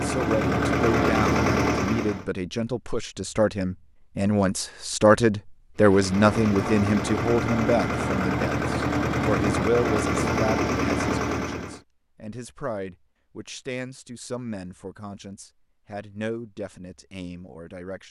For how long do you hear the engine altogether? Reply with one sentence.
You can hear the engine for 8 seconds altogether.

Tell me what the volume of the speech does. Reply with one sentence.
The volume of the speech goes up, then down.